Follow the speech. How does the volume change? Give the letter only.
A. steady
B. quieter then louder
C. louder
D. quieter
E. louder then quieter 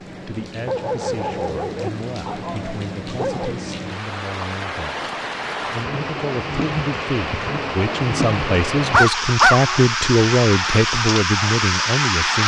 C.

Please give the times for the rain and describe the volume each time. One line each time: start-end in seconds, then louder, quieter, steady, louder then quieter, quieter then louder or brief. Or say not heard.
0.0-12.4 louder.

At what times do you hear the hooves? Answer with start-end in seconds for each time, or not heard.
not heard.